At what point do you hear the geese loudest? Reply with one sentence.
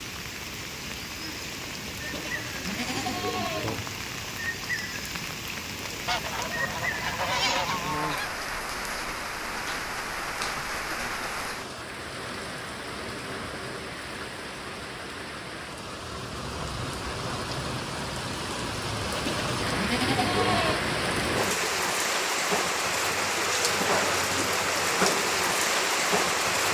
The volume of the geese peaks at 7 seconds.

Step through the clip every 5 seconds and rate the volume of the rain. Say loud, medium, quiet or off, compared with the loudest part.
medium, medium, medium, medium, loud, loud.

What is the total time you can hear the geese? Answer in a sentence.
You can hear the geese for 2 seconds altogether.